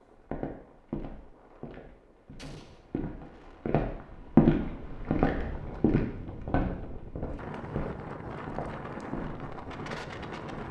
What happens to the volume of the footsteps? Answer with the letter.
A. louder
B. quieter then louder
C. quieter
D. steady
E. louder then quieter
E.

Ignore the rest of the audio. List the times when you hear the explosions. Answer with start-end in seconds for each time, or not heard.
2.4-2.9.